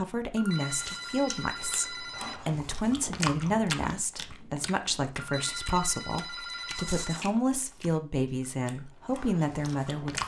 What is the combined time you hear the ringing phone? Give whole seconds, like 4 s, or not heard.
4 s.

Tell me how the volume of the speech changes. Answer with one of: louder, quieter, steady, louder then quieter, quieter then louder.
steady.